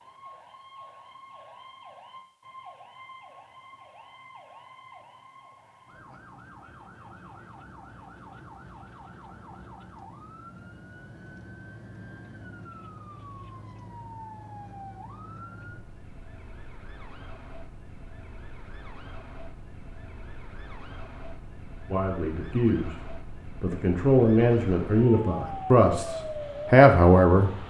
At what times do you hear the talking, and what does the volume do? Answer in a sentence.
The talking can be heard from 21.9 to 27.5 s, getting louder.